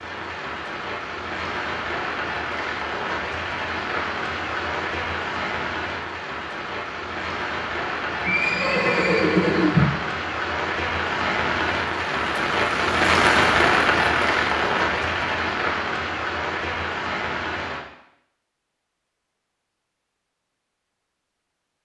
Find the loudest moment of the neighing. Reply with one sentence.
The loudest moment of the neighing is at 10 seconds.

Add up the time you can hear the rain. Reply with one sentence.
The rain can be heard for 18 seconds in total.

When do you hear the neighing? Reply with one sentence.
The neighing can be heard from 8.2 to 10.0 s.